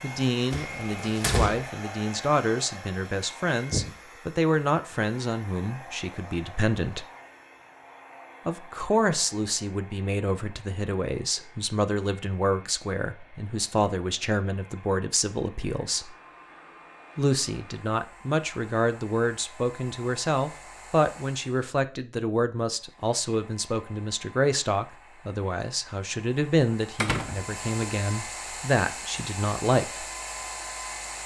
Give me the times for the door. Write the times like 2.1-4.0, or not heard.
0.5-1.6, 27.0-27.9.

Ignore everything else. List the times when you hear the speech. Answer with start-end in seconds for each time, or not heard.
0.0-7.0, 8.4-16.1, 17.1-30.1.